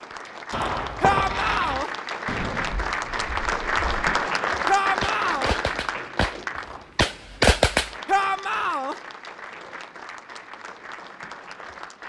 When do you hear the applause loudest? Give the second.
4 s.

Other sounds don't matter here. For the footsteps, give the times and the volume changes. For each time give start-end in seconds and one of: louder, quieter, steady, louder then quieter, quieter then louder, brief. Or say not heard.
not heard.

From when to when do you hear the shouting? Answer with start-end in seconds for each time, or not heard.
1.0-1.9, 4.7-5.5, 8.1-8.9.